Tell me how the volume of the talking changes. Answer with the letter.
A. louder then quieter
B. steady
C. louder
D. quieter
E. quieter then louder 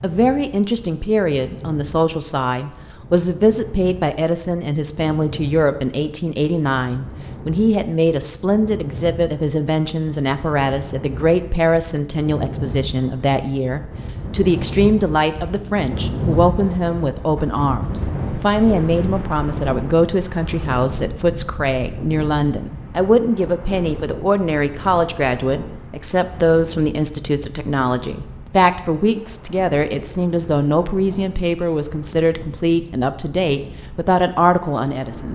B.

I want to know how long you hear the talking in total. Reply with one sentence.
You can hear the talking for 35 seconds altogether.